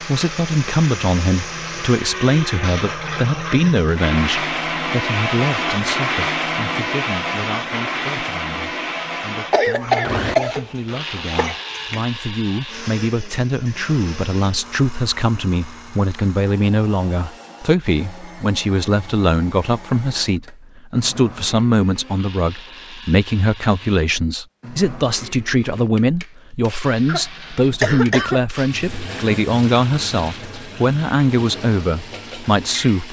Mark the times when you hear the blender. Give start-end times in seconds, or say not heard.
0.0-33.0.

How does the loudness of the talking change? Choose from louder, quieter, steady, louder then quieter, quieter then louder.
quieter then louder.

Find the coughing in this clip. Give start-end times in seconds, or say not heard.
9.5-12.1, 27.1-28.4.